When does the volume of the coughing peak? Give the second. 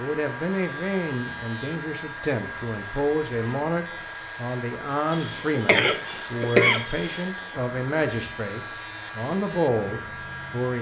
7 s.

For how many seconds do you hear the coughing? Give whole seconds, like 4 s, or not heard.
2 s.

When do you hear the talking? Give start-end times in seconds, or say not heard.
0.0-10.7.